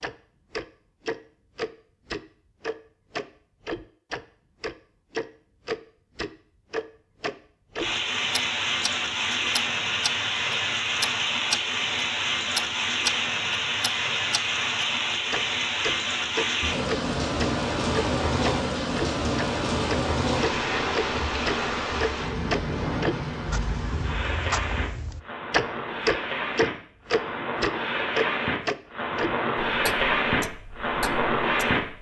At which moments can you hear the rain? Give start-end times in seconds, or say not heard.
7.8-31.8.